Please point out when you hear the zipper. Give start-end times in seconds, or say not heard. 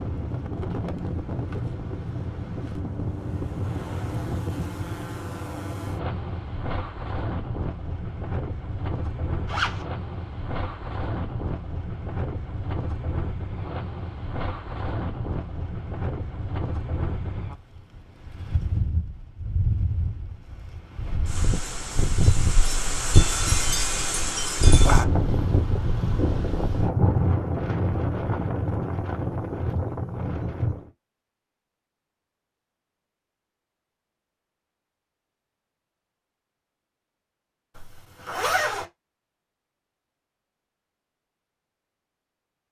9.4-9.8, 37.8-38.9.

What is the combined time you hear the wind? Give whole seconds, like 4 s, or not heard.
31 s.